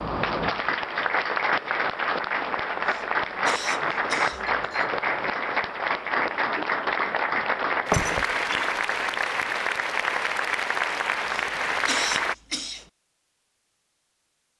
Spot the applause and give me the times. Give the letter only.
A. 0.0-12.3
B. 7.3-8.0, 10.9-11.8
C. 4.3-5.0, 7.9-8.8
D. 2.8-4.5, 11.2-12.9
A.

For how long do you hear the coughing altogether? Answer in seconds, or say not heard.
3 s.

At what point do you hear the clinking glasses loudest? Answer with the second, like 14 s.
8 s.